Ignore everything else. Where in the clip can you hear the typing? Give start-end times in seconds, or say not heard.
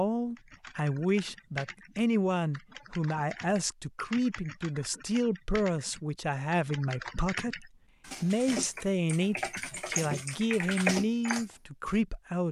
0.3-12.0.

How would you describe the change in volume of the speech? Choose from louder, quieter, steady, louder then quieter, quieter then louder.
steady.